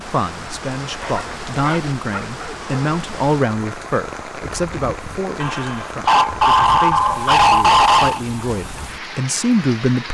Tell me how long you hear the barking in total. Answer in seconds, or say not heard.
5 s.